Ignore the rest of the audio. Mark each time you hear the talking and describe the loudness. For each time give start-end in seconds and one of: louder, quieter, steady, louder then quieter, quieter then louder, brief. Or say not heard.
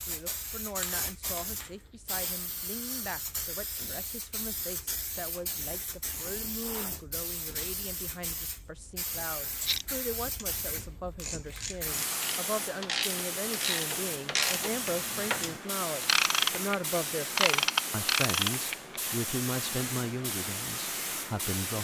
0.1-21.7 louder.